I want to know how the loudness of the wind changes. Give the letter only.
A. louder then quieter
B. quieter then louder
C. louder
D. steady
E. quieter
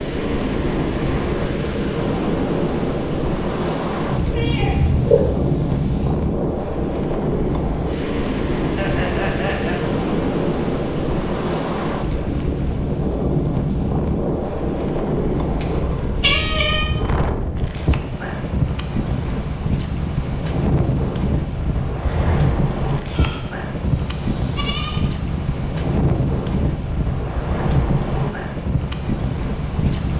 D.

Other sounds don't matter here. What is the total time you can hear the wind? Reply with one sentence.
You can hear the wind for 30 seconds altogether.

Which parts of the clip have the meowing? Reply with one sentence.
You can hear the meowing from 4.1 to 6.1 s, from 15.6 to 16.9 s and from 22.0 to 22.6 s.